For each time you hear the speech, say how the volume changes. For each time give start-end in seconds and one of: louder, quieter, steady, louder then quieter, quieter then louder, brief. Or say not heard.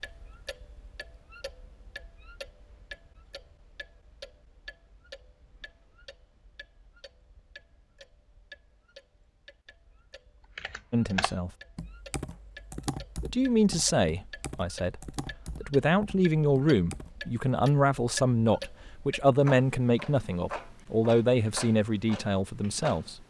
10.9-11.5 brief
13.2-23.2 steady.